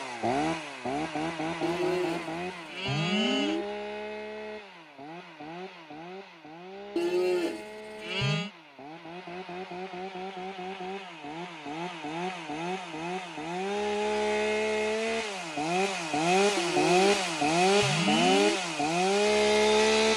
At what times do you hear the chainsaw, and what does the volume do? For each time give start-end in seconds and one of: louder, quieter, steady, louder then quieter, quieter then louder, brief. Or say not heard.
0.0-20.1 quieter then louder.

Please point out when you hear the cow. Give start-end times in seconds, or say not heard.
1.6-3.6, 7.0-8.5, 16.6-18.6.